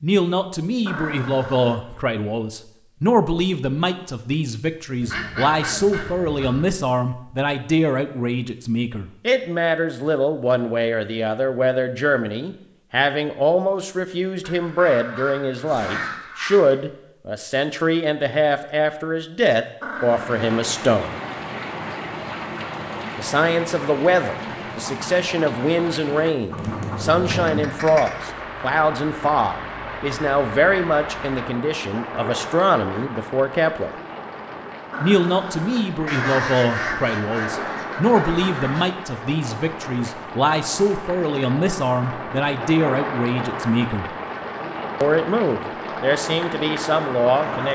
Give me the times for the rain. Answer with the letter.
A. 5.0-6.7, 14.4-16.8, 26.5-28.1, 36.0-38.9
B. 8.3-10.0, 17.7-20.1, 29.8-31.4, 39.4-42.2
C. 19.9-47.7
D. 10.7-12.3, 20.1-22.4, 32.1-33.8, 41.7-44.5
C.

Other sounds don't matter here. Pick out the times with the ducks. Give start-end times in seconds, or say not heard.
5.0-6.7, 14.4-16.8, 26.5-28.1, 36.0-38.9.